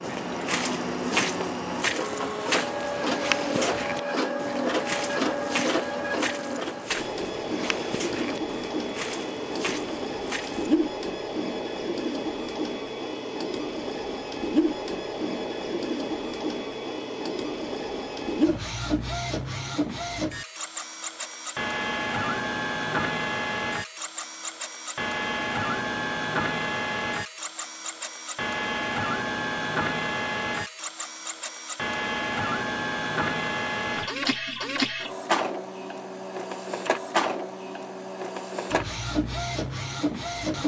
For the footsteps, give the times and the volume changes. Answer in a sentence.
You can hear the footsteps from 0.0 to 10.8 s, getting quieter.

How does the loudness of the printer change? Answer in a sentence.
The loudness of the printer stays about the same.